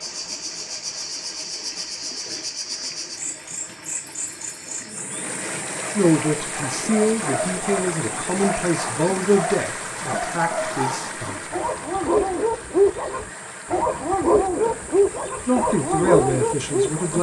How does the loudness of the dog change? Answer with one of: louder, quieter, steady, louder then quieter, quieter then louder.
louder.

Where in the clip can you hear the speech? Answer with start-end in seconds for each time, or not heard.
6.0-11.4, 15.4-17.1.